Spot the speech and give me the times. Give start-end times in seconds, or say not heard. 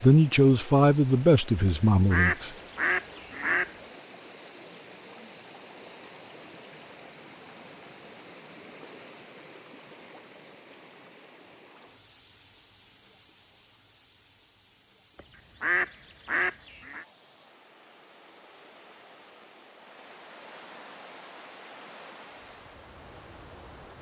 0.0-2.5.